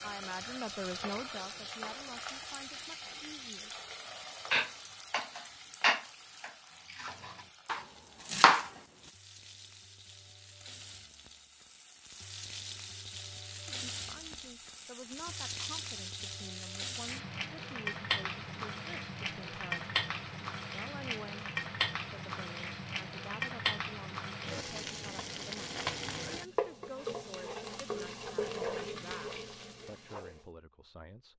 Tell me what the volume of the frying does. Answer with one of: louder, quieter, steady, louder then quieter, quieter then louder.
quieter then louder.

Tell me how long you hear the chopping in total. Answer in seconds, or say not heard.
4 s.